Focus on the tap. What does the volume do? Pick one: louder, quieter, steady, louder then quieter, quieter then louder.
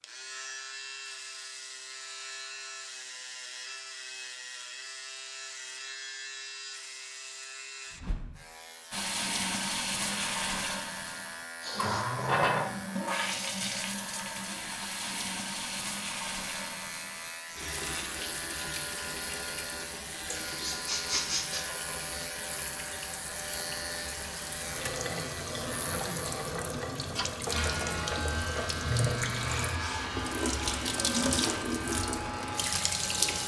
quieter then louder.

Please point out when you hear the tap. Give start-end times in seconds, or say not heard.
8.9-33.4.